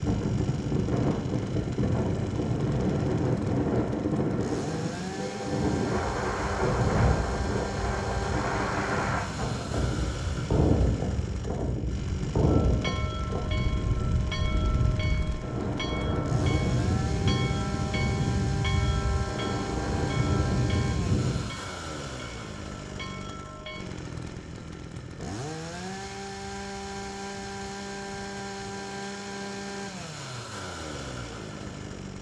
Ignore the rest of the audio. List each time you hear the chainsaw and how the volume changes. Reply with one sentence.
You can hear the chainsaw from 0.0 to 32.1 s, at a steady volume.